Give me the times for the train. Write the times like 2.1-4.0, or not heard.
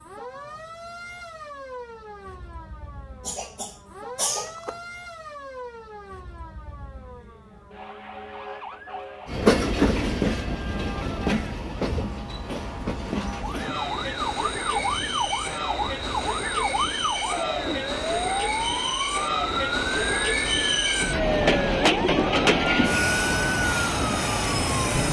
9.2-25.0.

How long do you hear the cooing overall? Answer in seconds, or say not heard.
not heard.